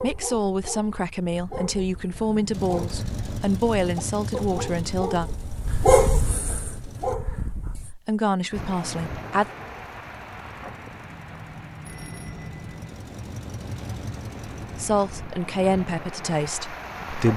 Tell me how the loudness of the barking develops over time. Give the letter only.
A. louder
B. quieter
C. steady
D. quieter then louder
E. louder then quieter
E.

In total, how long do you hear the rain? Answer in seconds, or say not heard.
9 s.